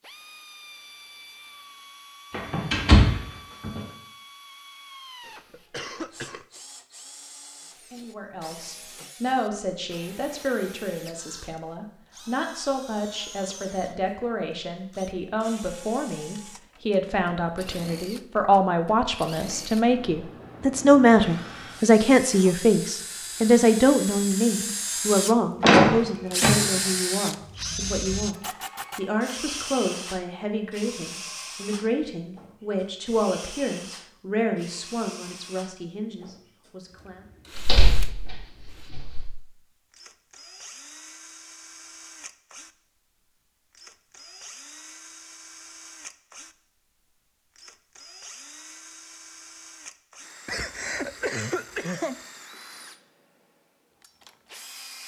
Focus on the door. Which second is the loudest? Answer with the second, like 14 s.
26 s.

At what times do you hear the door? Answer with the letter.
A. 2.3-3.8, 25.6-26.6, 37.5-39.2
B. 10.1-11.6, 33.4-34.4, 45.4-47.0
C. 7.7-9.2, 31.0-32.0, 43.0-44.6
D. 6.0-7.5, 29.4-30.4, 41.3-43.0
A.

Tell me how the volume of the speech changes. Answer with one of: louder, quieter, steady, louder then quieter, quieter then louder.
louder then quieter.